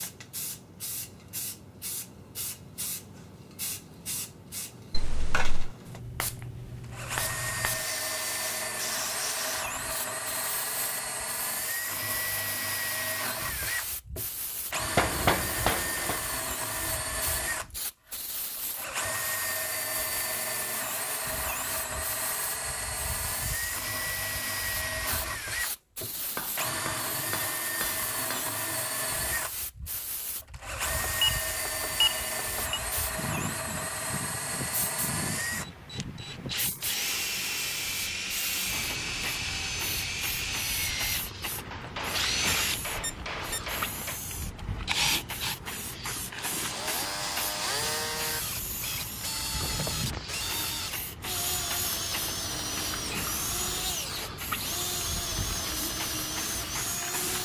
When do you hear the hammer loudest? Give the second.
15 s.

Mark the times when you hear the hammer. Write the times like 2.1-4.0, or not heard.
14.9-16.2, 26.0-28.6, 41.7-44.2.